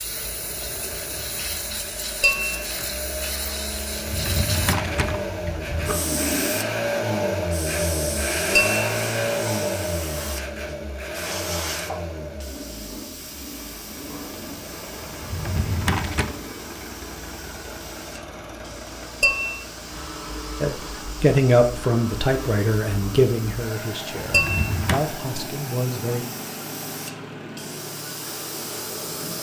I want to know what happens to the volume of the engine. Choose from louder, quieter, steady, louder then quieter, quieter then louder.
louder then quieter.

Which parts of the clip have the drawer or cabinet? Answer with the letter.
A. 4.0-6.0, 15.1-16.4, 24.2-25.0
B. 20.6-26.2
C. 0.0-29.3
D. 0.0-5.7
A.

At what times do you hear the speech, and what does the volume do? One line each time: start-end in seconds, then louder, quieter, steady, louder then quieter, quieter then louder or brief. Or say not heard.
20.6-26.2 quieter then louder.